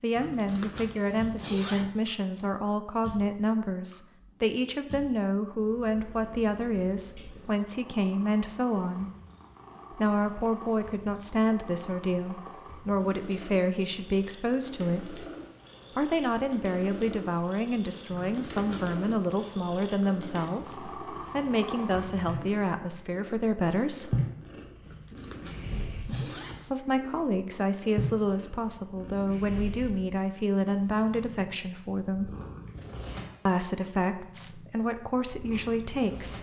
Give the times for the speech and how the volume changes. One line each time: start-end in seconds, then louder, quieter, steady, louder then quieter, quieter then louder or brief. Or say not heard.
0.0-9.1 steady
9.9-15.2 steady
15.9-24.2 steady
26.7-32.3 steady
33.5-36.3 brief.